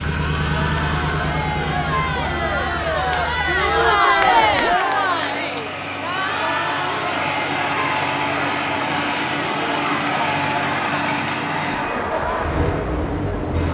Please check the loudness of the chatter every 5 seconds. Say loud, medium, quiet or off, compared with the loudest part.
loud, medium, medium.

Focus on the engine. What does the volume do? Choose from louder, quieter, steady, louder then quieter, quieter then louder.
quieter then louder.